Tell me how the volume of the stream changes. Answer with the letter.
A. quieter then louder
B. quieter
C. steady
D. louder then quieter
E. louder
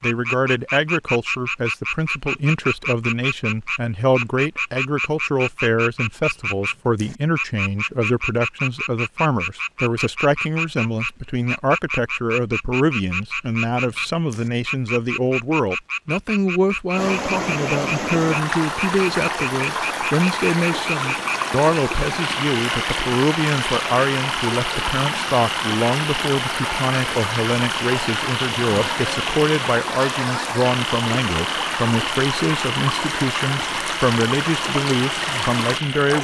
C.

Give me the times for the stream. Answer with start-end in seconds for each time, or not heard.
16.9-36.1.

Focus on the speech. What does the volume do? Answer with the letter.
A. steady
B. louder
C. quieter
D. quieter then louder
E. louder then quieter
A.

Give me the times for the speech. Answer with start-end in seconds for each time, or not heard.
0.0-36.1.